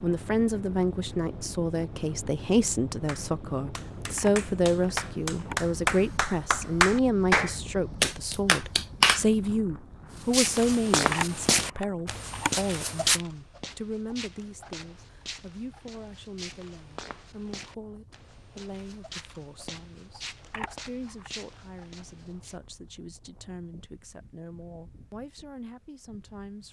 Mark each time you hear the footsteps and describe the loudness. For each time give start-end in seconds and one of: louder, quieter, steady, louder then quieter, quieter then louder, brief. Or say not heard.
10.3-22.6 quieter.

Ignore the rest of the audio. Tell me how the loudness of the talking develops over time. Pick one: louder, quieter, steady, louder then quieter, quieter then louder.
quieter.